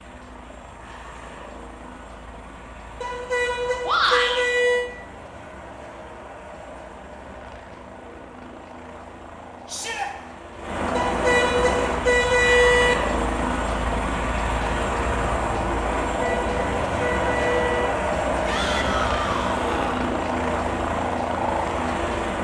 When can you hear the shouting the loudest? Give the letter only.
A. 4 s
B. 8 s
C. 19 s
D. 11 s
A.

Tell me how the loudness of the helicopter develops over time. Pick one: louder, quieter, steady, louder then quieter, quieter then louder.
louder.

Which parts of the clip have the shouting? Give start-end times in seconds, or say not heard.
3.9-4.4, 9.7-10.1, 18.4-20.1.